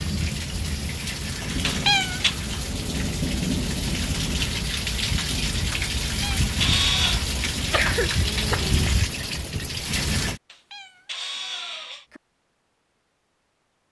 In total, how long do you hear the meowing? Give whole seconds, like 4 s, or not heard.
4 s.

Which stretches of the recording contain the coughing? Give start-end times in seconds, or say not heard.
7.7-8.9.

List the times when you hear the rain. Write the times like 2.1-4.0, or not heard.
0.0-10.4.